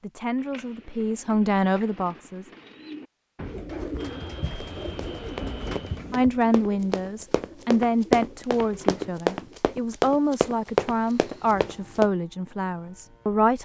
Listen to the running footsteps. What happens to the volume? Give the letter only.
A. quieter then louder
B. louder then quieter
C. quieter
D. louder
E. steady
D.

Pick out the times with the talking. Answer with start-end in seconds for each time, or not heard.
0.0-2.5, 6.1-13.5.